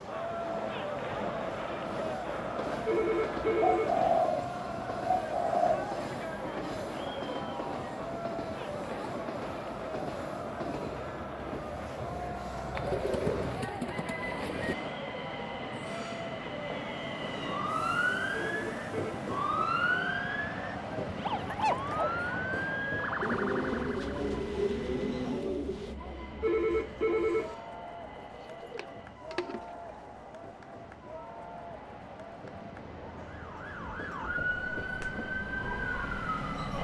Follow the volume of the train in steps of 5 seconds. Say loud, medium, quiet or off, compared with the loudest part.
loud, loud, loud, loud, loud, medium, medium, loud.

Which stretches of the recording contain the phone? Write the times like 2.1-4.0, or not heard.
2.9-4.0, 18.4-19.1, 26.4-27.6.